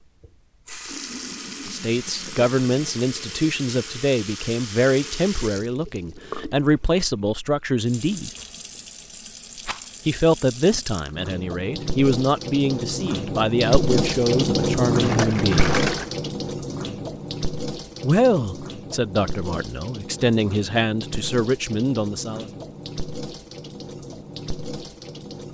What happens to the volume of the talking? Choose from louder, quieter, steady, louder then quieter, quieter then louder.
steady.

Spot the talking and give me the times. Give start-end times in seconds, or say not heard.
1.6-8.3, 10.1-15.7, 18.0-22.4.